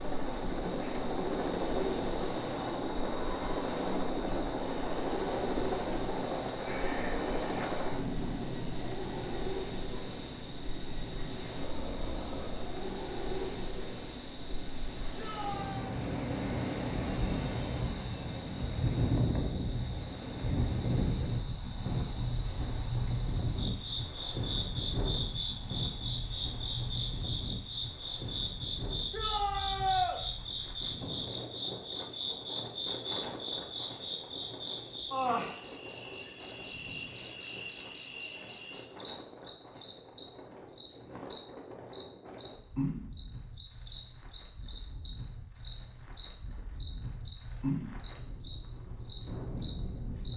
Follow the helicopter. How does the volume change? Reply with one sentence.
The volume of the helicopter goes down.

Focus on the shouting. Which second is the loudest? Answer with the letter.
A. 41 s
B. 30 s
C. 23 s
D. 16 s
B.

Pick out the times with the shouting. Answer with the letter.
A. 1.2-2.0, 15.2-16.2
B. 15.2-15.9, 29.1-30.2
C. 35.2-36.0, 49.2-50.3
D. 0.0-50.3
B.